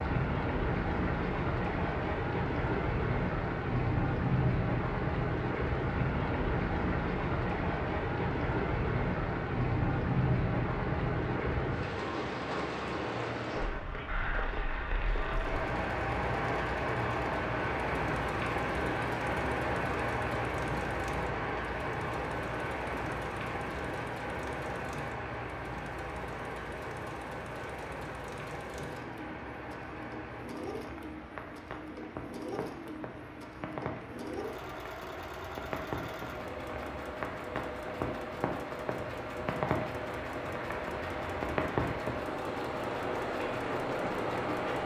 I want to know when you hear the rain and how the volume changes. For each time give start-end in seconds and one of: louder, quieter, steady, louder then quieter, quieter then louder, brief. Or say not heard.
0.0-44.8 quieter then louder.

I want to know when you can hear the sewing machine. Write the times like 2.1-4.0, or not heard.
15.2-44.8.